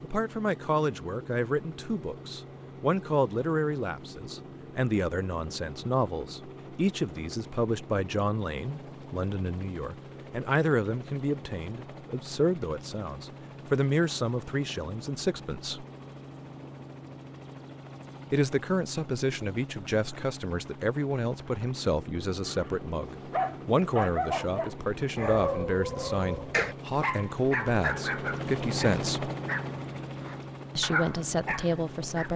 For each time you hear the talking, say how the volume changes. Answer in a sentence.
You can hear the talking from 0.0 to 15.8 s, at a steady volume; from 18.3 to 29.3 s, at a steady volume; and briefly from 30.8 to 32.3 s.